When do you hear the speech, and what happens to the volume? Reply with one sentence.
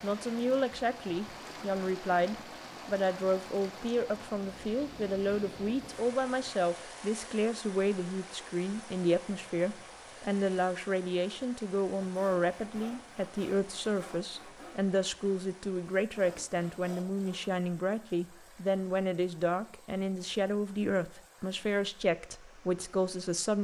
The speech can be heard from 0.0 to 23.5 s, at a steady volume.